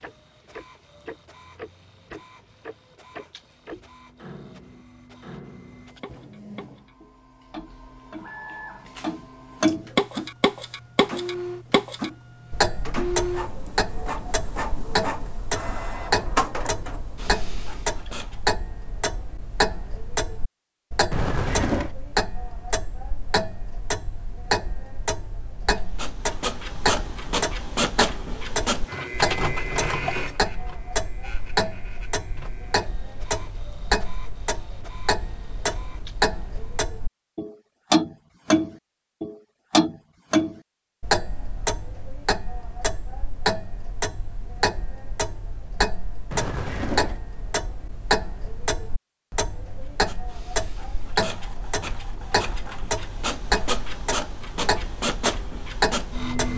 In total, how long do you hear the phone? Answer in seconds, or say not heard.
2 s.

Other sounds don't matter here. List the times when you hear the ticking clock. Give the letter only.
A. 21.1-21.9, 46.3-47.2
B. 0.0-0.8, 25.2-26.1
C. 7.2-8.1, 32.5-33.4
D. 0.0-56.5
D.